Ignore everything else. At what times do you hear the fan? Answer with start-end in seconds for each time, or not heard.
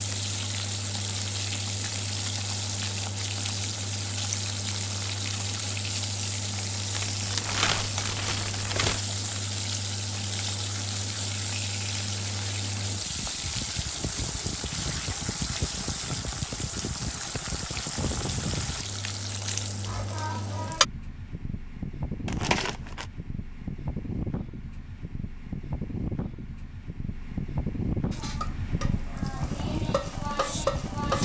0.0-31.2.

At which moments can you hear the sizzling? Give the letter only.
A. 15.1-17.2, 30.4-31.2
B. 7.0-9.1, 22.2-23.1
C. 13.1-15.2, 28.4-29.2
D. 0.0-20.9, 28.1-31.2
D.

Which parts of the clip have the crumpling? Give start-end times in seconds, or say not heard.
7.0-9.1, 22.2-23.1.